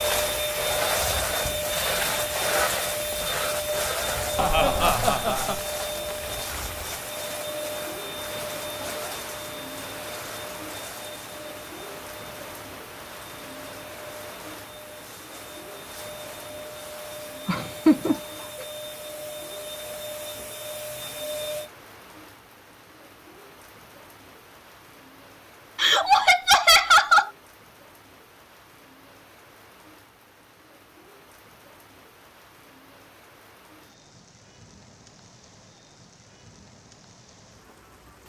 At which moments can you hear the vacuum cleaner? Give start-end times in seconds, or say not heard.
0.0-21.7.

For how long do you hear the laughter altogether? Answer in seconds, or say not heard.
4 s.